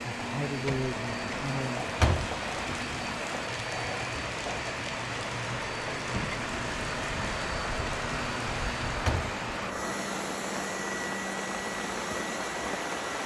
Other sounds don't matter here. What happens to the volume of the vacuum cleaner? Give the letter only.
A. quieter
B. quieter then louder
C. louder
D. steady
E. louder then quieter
D.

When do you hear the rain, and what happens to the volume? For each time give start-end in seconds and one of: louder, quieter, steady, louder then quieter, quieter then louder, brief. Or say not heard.
0.0-13.2 steady.